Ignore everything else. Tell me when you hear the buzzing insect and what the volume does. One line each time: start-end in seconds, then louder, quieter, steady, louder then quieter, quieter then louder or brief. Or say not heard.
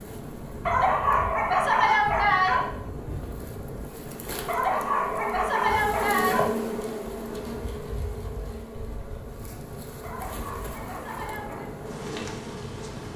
0.0-13.1 louder then quieter.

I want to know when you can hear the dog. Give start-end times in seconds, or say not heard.
0.7-2.6, 4.5-6.5, 10.0-11.7.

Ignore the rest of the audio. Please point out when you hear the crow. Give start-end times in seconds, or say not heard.
not heard.